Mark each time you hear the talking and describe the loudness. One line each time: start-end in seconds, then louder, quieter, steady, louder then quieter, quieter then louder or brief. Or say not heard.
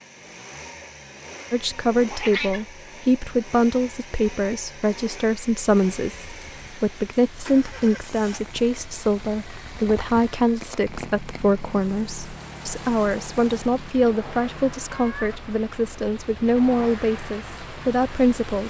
1.5-18.6 steady.